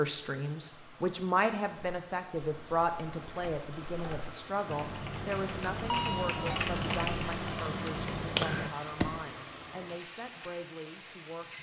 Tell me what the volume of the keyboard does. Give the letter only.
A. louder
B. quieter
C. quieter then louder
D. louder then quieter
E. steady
A.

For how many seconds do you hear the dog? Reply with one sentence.
You can't hear the dog here.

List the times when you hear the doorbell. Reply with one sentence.
The doorbell can be heard from 5.8 to 6.6 s.